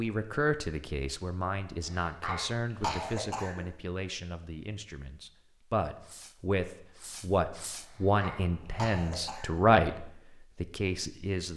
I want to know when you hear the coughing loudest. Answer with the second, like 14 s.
3 s.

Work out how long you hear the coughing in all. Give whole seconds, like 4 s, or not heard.
4 s.